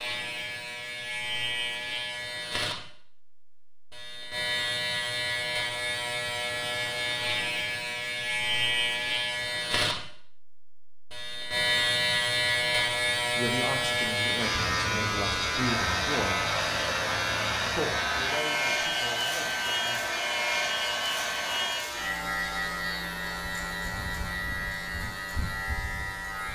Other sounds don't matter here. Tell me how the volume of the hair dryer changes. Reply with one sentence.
The loudness of the hair dryer stays about the same.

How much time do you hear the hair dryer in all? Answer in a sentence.
The hair dryer can be heard for 6 seconds in total.